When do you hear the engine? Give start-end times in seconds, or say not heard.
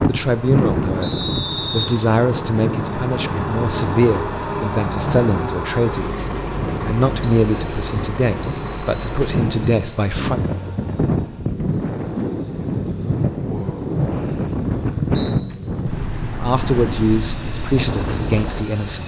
0.0-19.0.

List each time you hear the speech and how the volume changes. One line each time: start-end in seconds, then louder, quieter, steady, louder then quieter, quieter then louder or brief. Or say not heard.
0.1-10.4 steady
16.3-19.0 brief.